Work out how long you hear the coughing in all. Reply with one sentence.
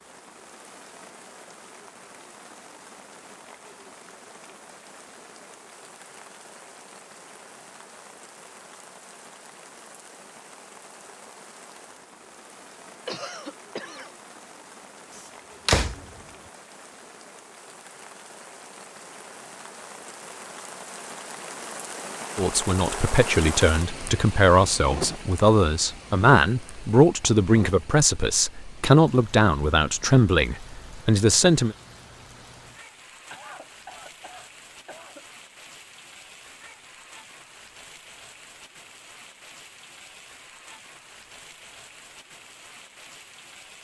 You can hear the coughing for 3 seconds altogether.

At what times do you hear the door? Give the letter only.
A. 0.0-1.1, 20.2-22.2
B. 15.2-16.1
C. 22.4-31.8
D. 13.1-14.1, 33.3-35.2
B.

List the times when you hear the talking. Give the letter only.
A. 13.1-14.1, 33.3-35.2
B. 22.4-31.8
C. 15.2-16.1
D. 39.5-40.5
B.